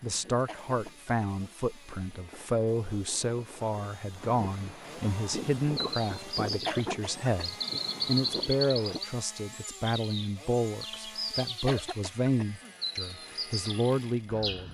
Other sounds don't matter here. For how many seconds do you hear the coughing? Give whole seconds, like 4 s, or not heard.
3 s.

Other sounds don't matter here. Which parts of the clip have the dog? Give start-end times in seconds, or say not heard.
not heard.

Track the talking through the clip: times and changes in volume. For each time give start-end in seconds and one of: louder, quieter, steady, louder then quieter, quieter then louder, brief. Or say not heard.
0.0-14.7 steady.